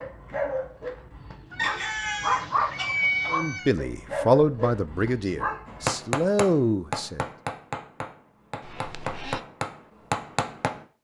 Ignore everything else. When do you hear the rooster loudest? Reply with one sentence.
The volume of the rooster peaks at 2 seconds.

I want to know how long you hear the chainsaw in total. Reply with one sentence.
The chainsaw can't be heard in this clip.